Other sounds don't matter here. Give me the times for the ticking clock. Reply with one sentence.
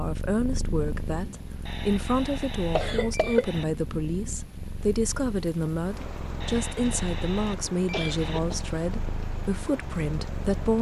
You can't hear the ticking clock here.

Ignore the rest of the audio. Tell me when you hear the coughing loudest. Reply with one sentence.
The volume of the coughing peaks at 3 seconds.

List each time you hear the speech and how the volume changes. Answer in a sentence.
You can hear the speech from 0.0 to 10.7 s, at a steady volume.